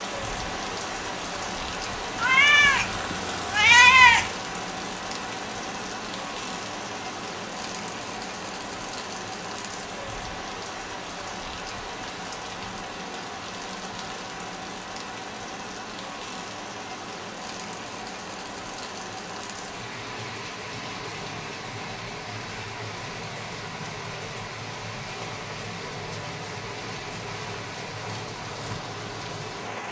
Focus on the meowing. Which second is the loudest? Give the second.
4 s.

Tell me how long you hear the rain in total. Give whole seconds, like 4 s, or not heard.
30 s.